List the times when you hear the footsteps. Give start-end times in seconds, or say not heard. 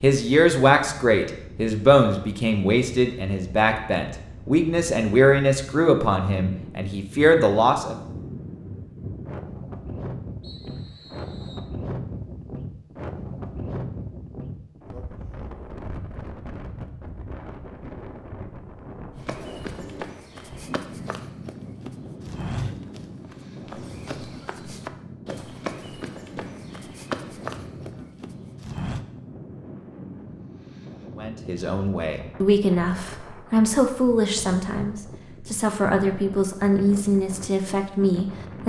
19.1-29.1.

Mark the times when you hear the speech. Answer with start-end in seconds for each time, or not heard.
0.0-8.0, 31.1-38.6.